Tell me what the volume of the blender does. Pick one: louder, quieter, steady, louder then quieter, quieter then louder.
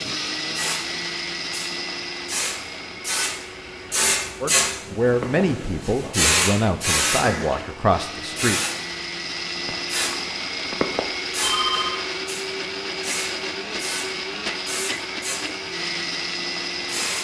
quieter then louder.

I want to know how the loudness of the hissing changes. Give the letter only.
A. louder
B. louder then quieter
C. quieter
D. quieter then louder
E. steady
B.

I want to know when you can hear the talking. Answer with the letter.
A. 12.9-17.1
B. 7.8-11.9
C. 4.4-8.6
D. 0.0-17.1
C.